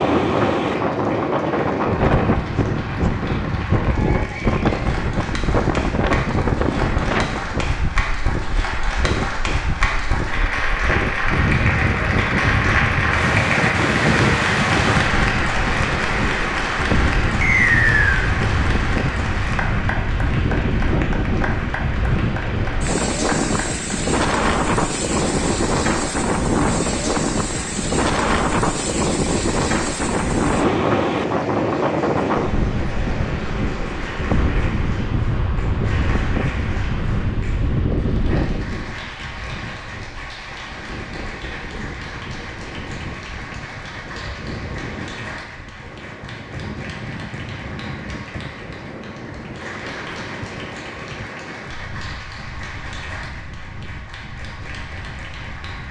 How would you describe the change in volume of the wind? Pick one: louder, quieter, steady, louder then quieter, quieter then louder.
quieter.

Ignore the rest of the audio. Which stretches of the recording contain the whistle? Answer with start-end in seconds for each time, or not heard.
17.4-18.2.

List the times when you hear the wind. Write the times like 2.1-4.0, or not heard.
0.0-55.8.